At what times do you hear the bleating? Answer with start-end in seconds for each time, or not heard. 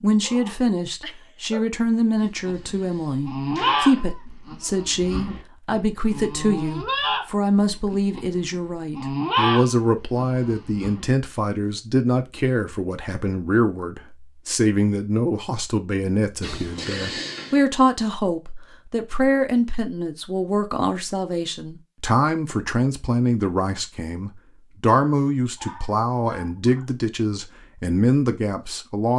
2.2-11.1.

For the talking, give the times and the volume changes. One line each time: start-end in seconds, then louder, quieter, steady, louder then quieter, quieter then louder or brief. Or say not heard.
0.0-29.1 steady.